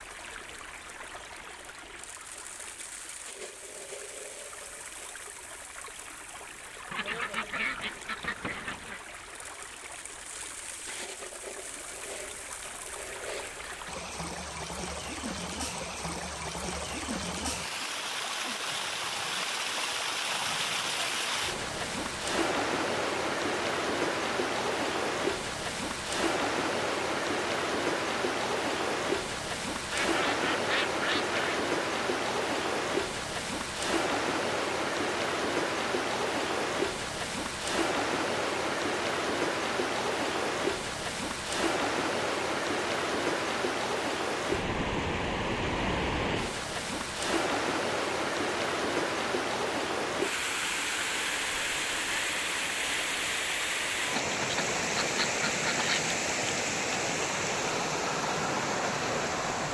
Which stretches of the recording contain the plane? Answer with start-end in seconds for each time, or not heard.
not heard.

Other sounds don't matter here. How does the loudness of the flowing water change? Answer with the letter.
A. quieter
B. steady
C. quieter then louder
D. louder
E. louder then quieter
D.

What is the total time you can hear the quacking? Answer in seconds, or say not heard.
6 s.